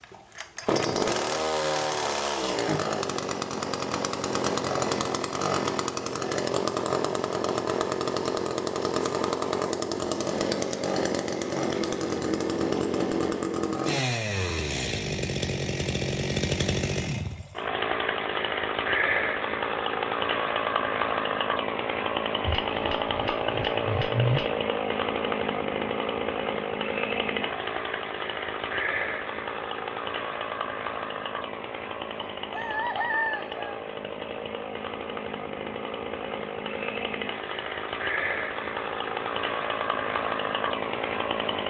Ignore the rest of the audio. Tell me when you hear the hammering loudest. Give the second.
24 s.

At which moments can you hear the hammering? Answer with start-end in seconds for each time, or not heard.
22.4-24.6.